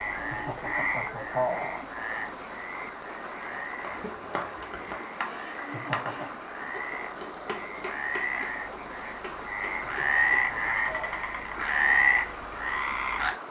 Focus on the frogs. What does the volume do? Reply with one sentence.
The volume of the frogs goes down, then up.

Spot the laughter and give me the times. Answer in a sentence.
You can hear the laughter from 0.1 to 1.8 s, from 5.5 to 6.4 s and from 9.8 to 11.3 s.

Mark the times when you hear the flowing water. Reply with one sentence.
The flowing water can be heard from 0.0 to 13.4 s.